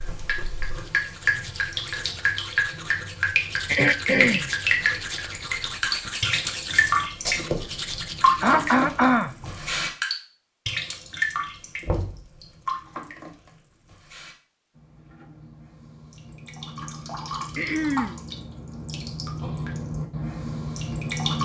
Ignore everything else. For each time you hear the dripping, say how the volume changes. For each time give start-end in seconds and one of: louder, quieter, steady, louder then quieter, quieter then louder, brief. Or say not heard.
0.0-21.3 quieter then louder.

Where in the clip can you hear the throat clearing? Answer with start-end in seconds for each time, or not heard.
3.6-4.5, 8.4-9.4, 17.6-18.2.